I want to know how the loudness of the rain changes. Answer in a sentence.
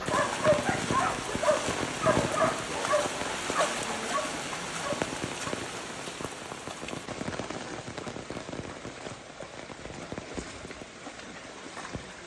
The volume of the rain goes down.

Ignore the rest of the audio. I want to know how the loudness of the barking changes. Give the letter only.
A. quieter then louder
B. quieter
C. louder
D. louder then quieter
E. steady
B.